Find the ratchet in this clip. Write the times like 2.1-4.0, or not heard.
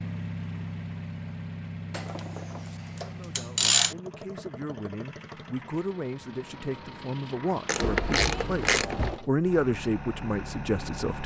1.9-4.0, 7.7-9.2.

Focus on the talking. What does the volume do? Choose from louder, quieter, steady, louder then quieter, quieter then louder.
louder.